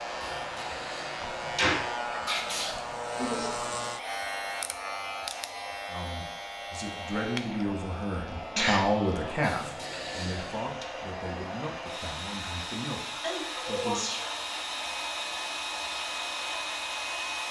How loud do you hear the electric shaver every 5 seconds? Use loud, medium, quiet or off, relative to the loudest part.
loud, loud, medium, medium.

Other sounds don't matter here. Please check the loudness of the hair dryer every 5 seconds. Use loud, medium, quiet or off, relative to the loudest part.
medium, medium, loud, loud.